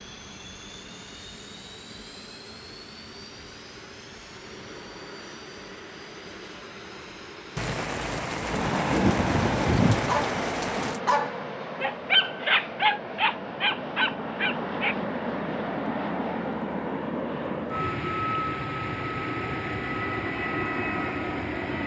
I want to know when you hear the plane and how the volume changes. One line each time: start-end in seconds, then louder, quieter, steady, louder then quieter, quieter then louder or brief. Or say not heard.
0.0-21.8 louder.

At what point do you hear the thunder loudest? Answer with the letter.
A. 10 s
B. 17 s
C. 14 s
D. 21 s
A.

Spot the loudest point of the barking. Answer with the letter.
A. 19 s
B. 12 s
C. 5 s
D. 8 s
B.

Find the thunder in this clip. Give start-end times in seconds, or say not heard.
7.5-11.0.